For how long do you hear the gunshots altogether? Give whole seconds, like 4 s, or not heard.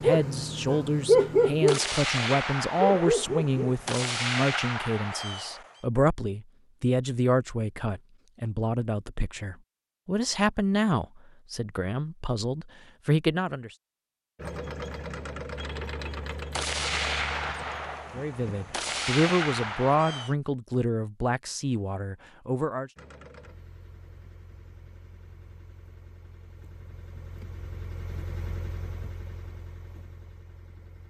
8 s.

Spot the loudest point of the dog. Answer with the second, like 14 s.
1 s.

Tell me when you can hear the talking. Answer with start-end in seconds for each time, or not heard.
0.0-13.7, 18.1-22.9.